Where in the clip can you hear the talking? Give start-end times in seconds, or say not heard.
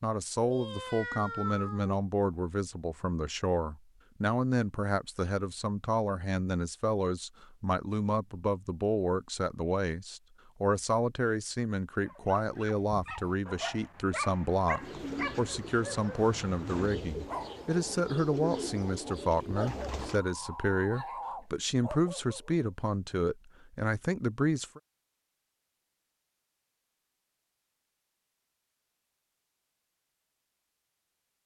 0.0-24.8.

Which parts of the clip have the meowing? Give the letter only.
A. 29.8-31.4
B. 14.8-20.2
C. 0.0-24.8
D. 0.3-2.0
D.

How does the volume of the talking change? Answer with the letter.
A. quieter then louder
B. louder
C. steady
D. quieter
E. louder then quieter
C.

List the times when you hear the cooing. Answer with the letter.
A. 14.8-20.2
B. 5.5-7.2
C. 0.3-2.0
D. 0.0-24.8
A.